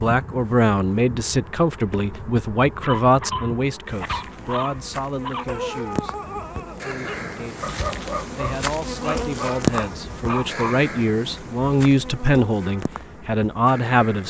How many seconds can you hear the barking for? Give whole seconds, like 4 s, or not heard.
8 s.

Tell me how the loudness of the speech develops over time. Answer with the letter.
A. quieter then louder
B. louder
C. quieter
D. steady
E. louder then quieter
A.